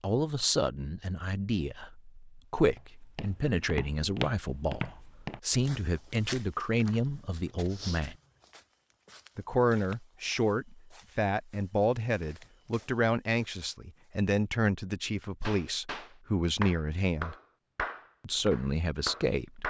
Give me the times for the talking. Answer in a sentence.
The talking can be heard from 0.0 to 8.2 s, from 9.3 to 17.4 s and from 18.2 to 19.6 s.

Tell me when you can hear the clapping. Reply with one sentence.
You can hear the clapping from 15.4 to 19.6 s.